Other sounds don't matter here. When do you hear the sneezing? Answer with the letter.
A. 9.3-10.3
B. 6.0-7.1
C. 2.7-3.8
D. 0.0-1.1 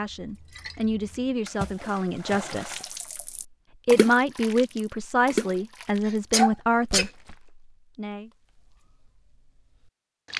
B.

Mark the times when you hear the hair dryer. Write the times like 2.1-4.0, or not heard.
not heard.